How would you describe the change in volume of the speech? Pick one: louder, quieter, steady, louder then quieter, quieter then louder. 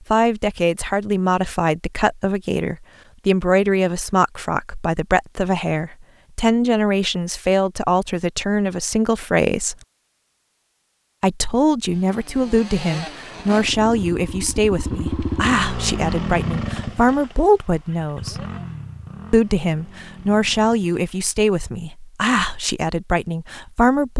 steady.